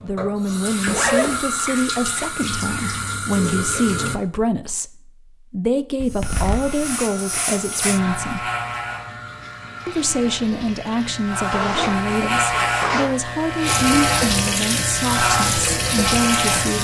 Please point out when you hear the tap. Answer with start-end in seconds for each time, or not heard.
0.0-4.2, 6.2-16.7.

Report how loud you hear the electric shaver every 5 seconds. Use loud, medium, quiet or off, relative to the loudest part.
off, medium, loud, loud.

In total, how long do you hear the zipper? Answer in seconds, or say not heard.
3 s.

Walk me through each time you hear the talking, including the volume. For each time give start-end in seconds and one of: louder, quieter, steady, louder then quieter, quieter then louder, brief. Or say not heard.
0.0-8.5 steady
9.8-16.7 steady.